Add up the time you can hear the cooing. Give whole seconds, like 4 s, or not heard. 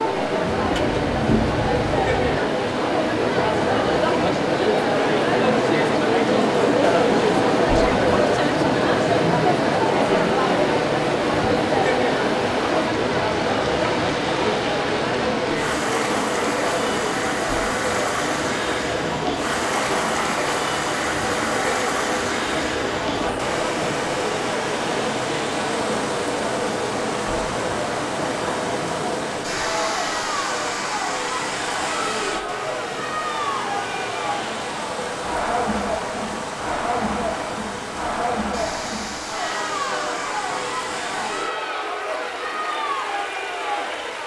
2 s.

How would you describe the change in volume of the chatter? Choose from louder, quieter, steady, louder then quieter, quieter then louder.
quieter.